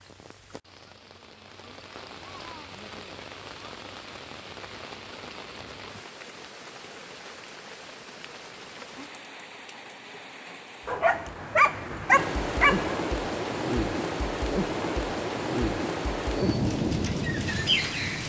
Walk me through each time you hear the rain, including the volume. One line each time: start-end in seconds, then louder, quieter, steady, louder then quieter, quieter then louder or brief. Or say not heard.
0.0-18.2 louder.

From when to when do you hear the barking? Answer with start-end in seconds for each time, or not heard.
10.8-13.0.